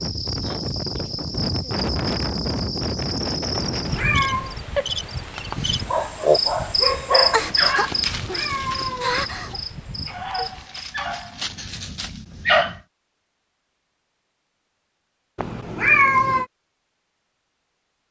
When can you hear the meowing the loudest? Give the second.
16 s.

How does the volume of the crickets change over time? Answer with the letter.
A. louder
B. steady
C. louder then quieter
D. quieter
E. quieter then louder
C.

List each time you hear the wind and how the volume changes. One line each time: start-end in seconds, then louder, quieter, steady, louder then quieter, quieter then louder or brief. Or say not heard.
0.0-10.8 quieter.